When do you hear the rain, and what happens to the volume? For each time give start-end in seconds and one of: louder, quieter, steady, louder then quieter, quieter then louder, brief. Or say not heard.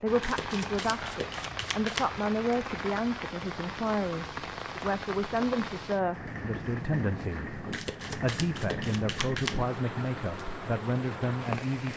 0.0-11.9 steady.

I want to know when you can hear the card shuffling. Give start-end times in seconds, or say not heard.
0.2-2.1, 7.7-9.6.